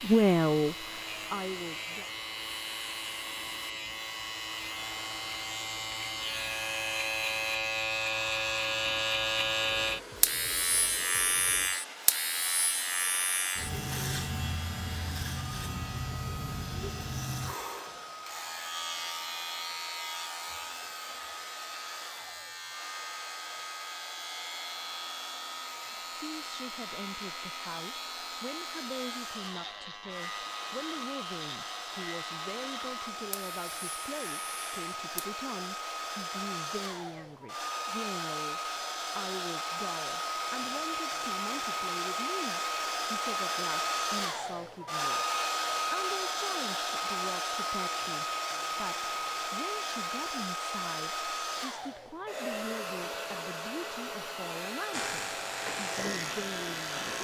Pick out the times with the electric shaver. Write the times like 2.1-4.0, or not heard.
0.0-35.3, 54.9-57.1.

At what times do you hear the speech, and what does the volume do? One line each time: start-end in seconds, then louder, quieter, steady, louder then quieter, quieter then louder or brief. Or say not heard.
0.0-2.1 brief
26.1-57.1 steady.